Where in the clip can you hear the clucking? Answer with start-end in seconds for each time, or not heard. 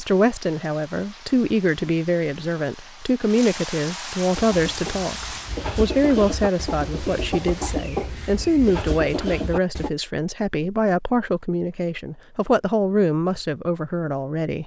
4.3-9.9.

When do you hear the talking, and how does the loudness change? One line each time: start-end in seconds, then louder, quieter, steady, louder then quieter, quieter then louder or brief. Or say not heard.
0.0-14.6 steady.